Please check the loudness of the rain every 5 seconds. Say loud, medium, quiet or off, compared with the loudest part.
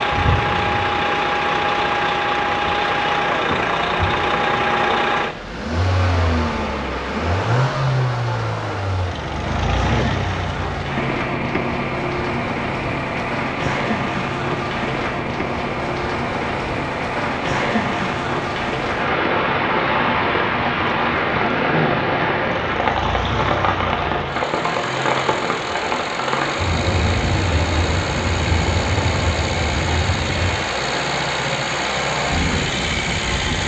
medium, medium, medium, loud, loud, loud, medium.